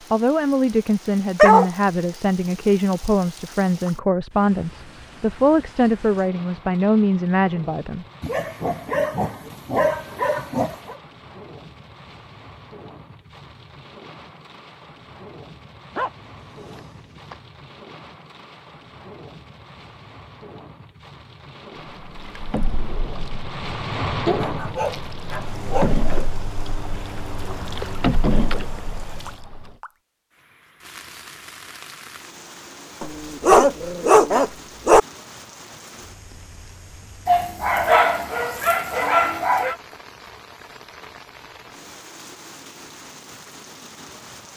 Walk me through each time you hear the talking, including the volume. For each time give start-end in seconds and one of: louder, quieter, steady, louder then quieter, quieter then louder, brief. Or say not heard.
0.1-8.1 steady.